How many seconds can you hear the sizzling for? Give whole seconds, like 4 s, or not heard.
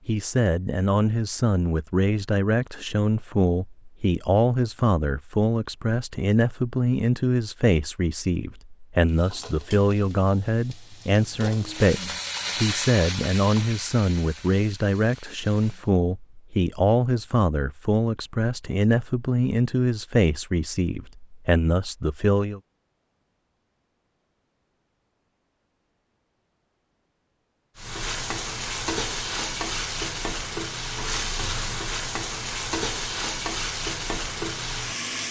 14 s.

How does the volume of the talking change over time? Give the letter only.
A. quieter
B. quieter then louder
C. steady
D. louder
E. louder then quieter
C.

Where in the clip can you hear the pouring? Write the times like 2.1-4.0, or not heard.
not heard.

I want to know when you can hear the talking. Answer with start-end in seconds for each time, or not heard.
0.1-22.6.